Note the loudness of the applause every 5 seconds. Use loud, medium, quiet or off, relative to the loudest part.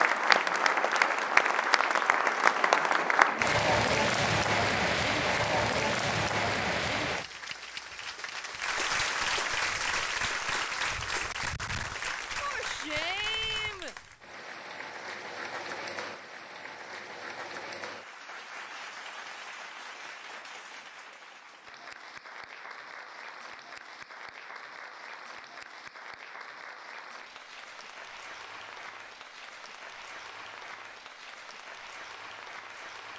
loud, medium, medium, quiet, quiet, quiet, quiet.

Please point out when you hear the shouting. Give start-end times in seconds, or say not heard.
12.4-13.9.